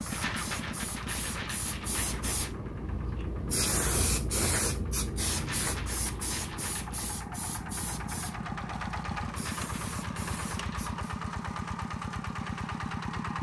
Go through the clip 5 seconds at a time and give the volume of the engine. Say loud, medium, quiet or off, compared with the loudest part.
medium, loud, loud.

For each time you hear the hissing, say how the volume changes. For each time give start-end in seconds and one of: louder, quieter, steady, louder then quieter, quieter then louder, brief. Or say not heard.
0.0-11.1 louder then quieter.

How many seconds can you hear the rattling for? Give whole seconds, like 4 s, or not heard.
6 s.